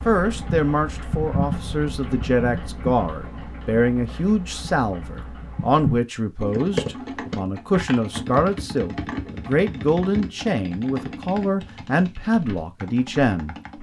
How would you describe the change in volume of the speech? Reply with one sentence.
The loudness of the speech stays about the same.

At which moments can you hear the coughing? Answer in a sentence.
The coughing can't be heard in this clip.